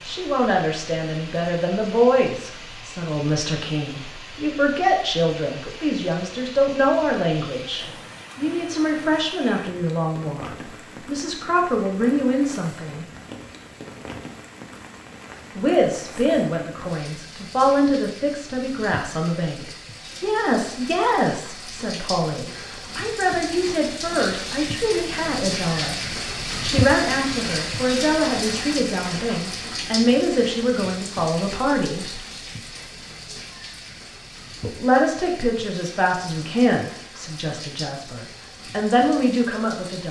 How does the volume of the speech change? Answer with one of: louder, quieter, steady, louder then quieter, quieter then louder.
steady.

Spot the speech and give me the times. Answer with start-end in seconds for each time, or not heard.
0.0-13.1, 15.6-25.9, 26.6-32.2, 34.6-40.0.